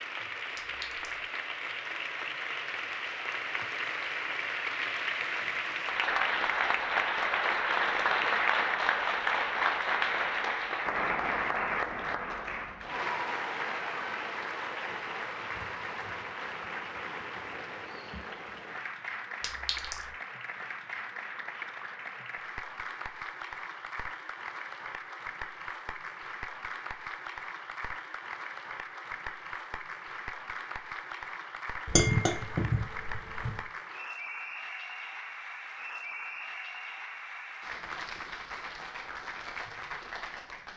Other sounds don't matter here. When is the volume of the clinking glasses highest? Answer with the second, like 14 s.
32 s.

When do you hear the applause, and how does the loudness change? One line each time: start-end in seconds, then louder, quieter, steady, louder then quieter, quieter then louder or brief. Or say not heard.
0.0-40.7 quieter.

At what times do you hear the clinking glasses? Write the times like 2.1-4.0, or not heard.
0.6-1.2, 19.4-20.1, 31.9-33.5.